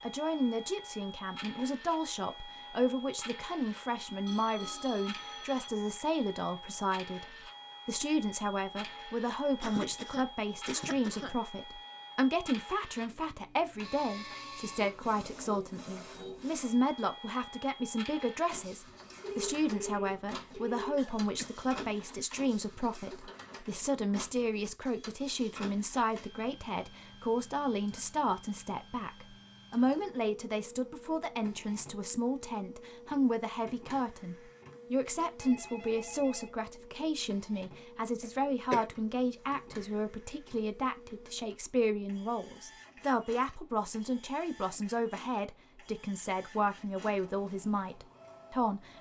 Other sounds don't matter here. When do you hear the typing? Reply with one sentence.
The typing can't be heard in this clip.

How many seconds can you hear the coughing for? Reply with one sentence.
You can hear the coughing for 3 seconds altogether.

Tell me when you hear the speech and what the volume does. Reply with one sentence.
The speech can be heard from 0.0 to 48.9 s, at a steady volume.